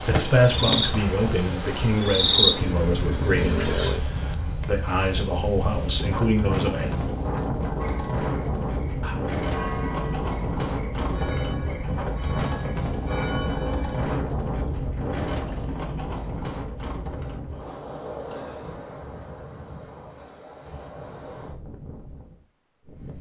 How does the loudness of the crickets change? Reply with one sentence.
The volume of the crickets goes down.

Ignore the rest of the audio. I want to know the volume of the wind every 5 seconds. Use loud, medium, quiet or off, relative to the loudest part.
loud, loud, loud, medium, quiet.